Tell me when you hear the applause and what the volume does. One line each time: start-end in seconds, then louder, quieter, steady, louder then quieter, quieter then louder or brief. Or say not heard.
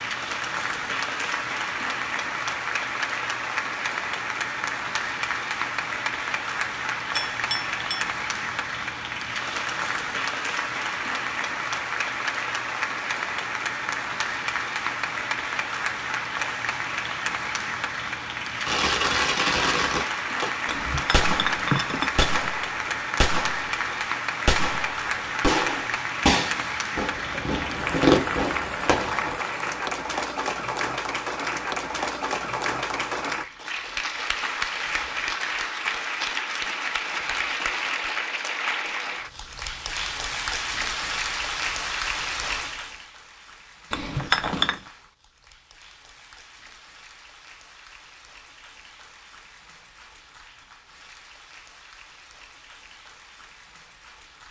0.0-54.4 quieter.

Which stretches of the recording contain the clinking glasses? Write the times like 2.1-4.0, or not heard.
7.2-8.2, 20.6-22.4, 43.9-44.8.